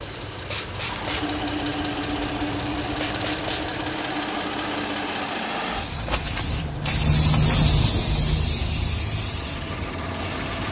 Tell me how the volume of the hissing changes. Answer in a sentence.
The loudness of the hissing goes up, then down.